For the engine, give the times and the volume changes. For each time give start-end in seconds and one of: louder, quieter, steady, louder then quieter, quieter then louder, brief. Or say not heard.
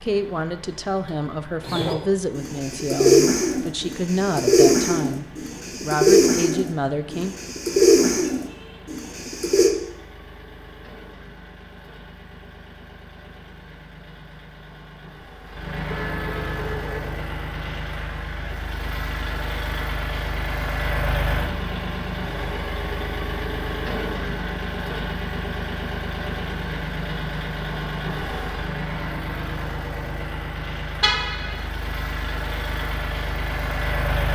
0.0-34.2 louder.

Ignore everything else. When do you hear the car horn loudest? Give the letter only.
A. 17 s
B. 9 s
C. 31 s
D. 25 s
C.